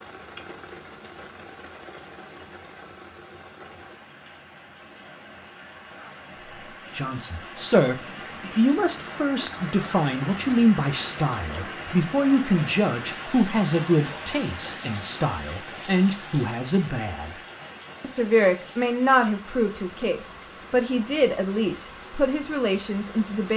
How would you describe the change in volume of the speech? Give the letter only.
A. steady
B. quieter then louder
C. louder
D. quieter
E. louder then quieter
A.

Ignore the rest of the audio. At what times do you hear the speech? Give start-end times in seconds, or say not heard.
6.9-17.3, 18.0-23.5.